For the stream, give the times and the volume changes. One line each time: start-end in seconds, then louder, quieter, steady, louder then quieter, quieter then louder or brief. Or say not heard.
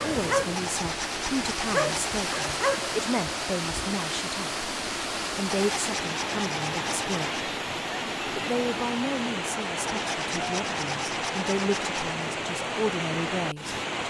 0.0-14.0 steady.